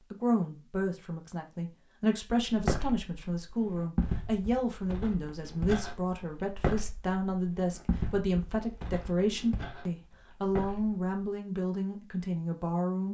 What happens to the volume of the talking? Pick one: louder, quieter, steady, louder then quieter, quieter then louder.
steady.